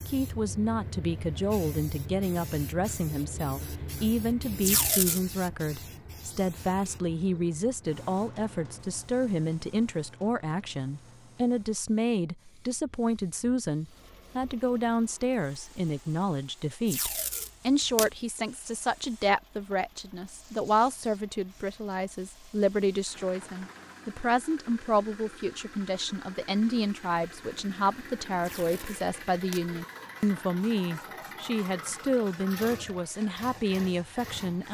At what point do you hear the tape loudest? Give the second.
5 s.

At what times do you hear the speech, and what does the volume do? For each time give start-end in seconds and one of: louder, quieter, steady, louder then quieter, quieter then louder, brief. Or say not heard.
0.1-34.6 steady.